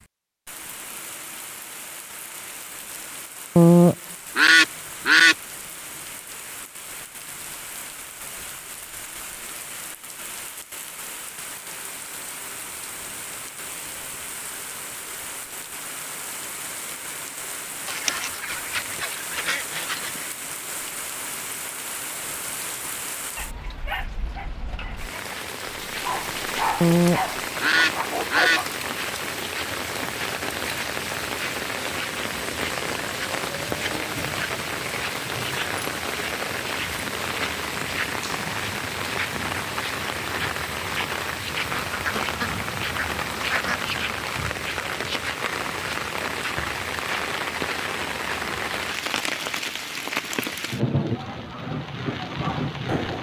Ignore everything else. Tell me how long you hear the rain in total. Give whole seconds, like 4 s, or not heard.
53 s.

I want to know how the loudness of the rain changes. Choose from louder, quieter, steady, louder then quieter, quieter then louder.
louder.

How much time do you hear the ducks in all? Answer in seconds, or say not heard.
8 s.